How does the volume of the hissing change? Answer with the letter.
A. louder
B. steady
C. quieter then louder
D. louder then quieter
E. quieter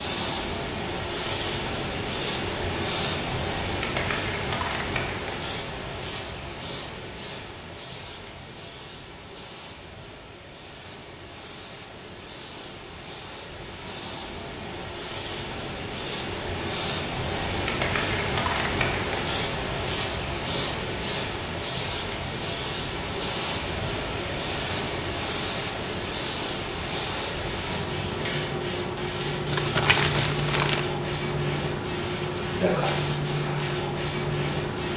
C.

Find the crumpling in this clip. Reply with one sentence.
You can hear the crumpling from 29.5 to 30.9 s.